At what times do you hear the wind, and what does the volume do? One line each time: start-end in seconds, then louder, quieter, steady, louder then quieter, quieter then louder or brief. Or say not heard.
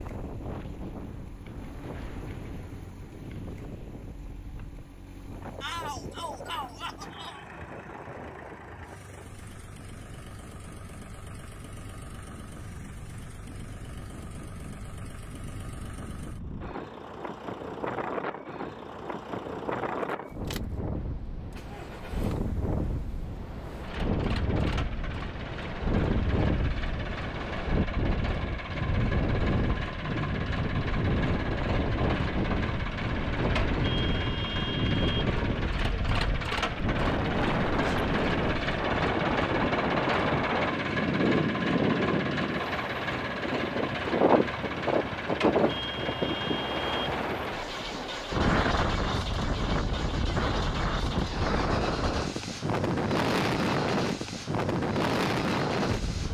0.0-56.2 louder.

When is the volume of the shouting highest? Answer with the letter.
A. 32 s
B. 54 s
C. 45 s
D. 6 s
D.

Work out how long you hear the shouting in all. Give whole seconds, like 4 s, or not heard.
2 s.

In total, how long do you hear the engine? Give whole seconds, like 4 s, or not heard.
56 s.